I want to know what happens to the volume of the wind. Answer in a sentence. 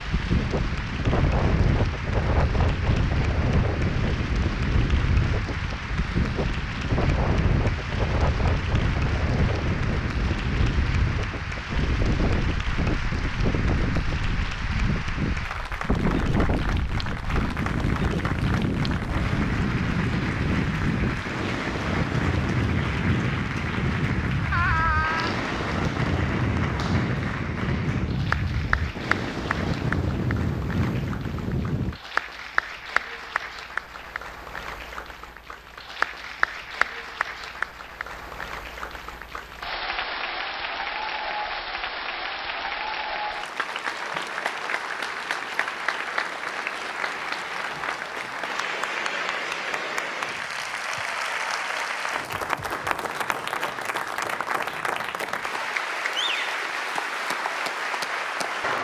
The loudness of the wind stays about the same.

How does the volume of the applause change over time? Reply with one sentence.
The loudness of the applause goes up.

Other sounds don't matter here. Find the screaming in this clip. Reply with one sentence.
You can hear the screaming from 24.5 to 25.4 s.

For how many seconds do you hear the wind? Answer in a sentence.
The wind can be heard for 32 seconds in total.